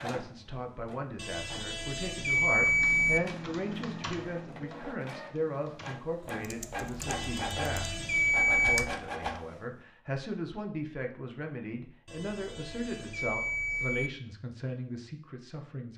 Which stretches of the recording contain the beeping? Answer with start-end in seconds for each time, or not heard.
1.1-3.2, 7.0-8.8, 12.1-14.1.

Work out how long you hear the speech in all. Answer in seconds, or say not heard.
16 s.